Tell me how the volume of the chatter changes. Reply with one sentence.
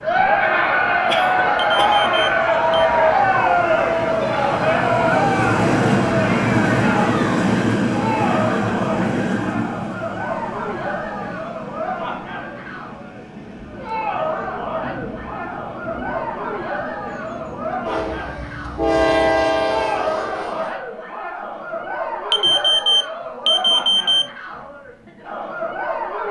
The volume of the chatter goes down.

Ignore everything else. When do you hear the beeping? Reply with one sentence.
The beeping can be heard from 1.6 to 2.9 s and from 22.3 to 24.3 s.